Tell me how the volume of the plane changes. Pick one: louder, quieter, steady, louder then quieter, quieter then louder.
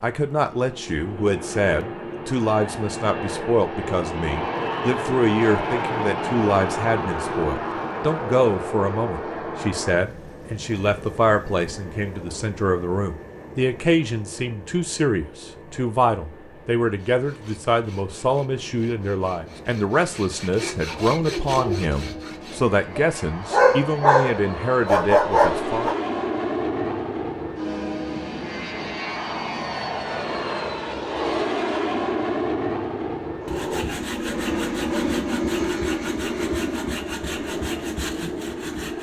quieter then louder.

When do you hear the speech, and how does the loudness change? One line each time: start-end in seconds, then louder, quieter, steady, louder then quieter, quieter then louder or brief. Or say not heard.
0.0-25.9 steady.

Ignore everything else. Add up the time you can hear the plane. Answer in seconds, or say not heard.
39 s.